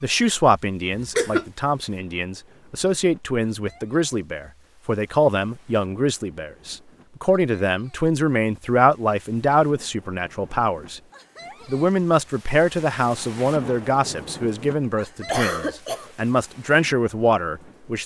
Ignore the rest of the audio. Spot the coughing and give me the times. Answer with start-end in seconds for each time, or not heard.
0.9-1.5, 15.2-16.1.